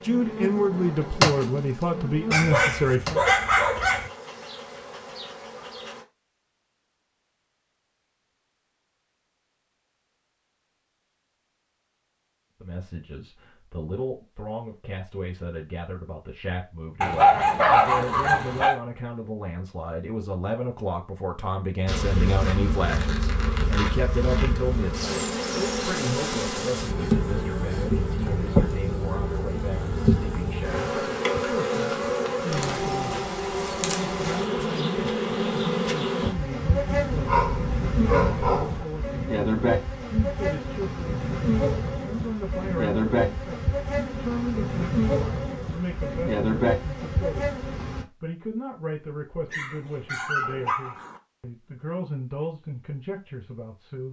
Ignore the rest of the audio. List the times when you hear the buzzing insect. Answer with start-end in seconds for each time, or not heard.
0.0-6.0, 21.9-48.0.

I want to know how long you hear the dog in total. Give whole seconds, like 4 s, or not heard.
7 s.